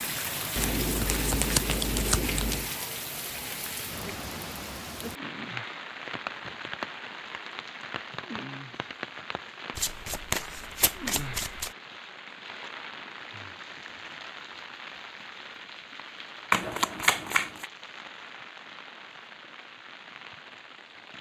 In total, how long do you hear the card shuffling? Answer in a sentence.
The card shuffling can be heard for 5 seconds in total.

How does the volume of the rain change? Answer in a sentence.
The volume of the rain goes down.